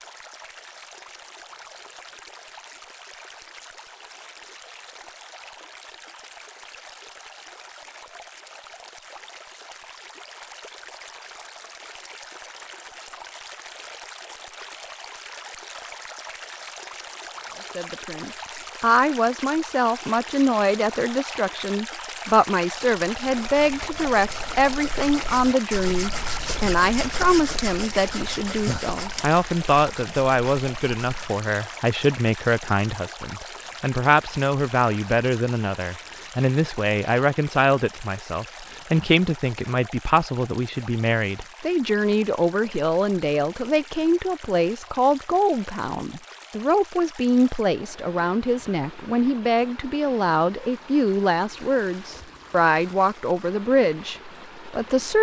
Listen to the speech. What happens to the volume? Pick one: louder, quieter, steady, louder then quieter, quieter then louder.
steady.